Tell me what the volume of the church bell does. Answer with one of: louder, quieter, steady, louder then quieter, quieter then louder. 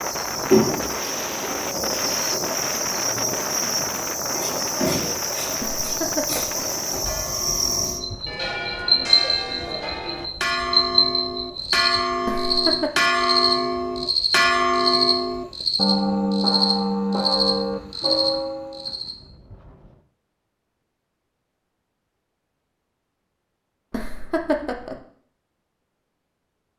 louder.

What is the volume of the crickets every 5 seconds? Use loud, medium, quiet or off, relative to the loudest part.
loud, loud, loud, loud, off, off.